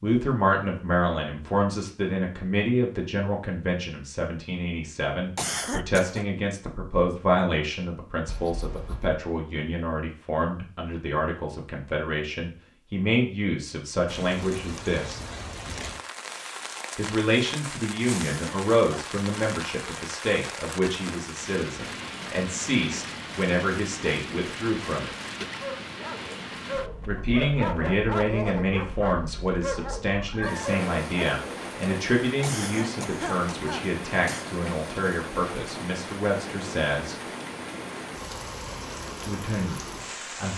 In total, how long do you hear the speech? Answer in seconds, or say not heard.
35 s.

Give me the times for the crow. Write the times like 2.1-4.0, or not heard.
not heard.